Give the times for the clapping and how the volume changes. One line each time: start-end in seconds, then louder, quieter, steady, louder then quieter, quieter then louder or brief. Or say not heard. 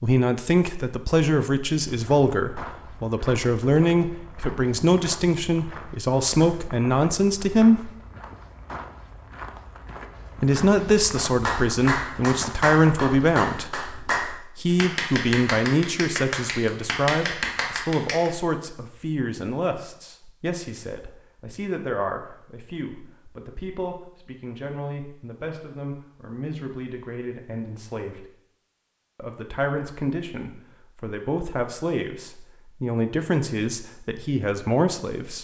11.3-18.3 steady.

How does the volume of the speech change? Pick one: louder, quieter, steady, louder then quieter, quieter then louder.
quieter then louder.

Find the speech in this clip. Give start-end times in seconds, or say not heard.
0.0-7.9, 10.4-28.3, 29.1-35.4.